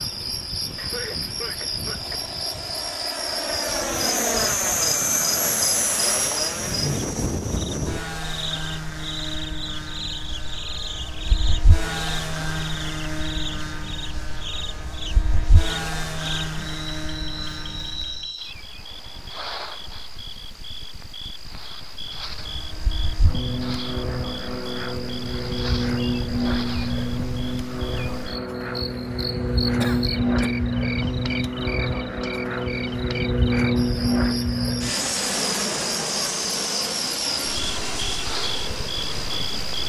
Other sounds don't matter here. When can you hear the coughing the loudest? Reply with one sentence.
The volume of the coughing peaks at 30 seconds.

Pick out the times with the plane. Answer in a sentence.
The plane can be heard from 0.0 to 18.3 s and from 21.9 to 39.8 s.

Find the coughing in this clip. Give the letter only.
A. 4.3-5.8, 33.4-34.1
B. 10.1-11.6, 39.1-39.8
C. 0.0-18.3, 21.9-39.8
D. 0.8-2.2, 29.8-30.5
D.